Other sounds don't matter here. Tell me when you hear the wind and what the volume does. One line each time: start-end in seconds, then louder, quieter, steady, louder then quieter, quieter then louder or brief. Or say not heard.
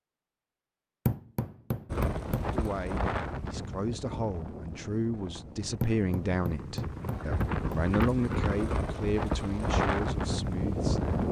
1.9-11.2 quieter then louder.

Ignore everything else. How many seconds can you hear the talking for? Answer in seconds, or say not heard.
9 s.